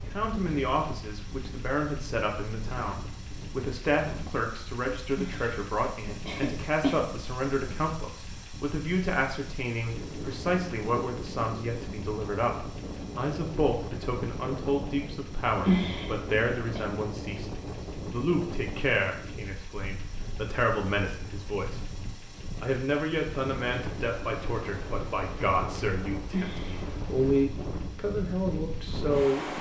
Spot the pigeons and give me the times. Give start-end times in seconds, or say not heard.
not heard.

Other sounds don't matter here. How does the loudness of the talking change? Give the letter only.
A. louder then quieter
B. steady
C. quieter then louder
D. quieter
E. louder
B.